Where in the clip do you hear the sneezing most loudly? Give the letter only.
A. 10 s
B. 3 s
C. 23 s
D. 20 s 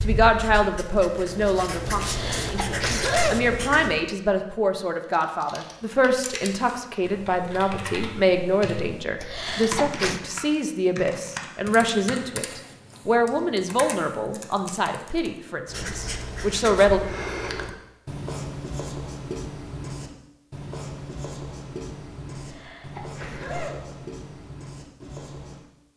B.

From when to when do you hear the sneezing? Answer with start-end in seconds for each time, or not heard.
1.9-3.5, 9.2-10.2, 22.4-23.9.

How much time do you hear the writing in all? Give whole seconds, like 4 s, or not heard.
14 s.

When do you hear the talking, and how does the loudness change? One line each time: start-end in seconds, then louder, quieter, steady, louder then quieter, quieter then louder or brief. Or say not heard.
0.0-17.0 steady.